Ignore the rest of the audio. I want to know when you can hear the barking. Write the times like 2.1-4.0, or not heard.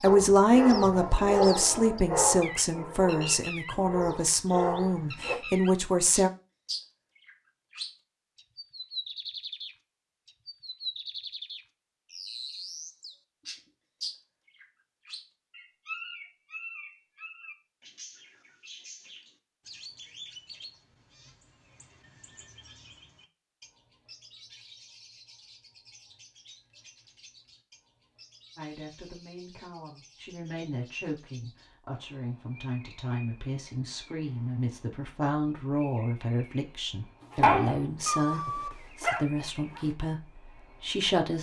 0.1-5.3, 37.3-39.9.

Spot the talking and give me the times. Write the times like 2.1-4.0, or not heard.
0.0-6.3, 28.6-41.3.